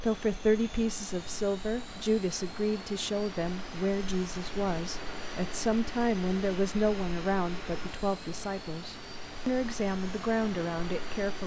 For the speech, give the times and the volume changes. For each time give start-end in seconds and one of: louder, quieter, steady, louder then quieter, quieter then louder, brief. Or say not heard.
0.0-11.4 steady.